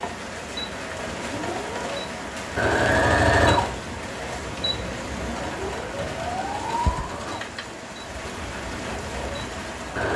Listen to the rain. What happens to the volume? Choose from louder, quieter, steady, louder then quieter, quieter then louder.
steady.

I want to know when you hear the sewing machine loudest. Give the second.
3 s.